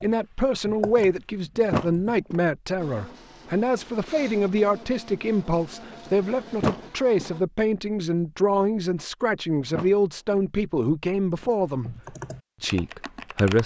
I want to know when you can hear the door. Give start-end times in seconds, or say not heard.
1.7-2.4, 6.6-7.3, 9.7-10.4.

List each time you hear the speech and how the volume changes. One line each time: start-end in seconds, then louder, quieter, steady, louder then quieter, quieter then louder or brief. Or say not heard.
0.0-11.9 steady
12.6-13.6 brief.